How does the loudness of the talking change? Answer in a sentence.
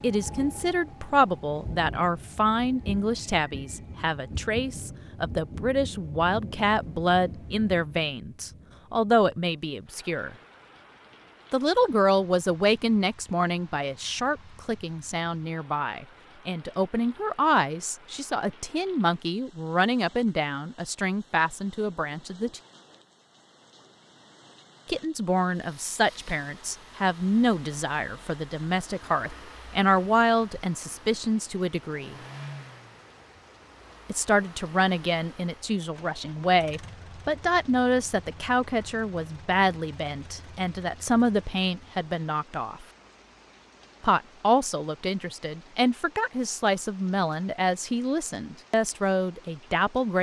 The volume of the talking stays about the same.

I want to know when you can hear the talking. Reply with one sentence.
The talking can be heard from 0.0 to 10.3 s, from 11.5 to 22.6 s, from 24.9 to 32.2 s, from 34.0 to 42.9 s and from 44.0 to 50.1 s.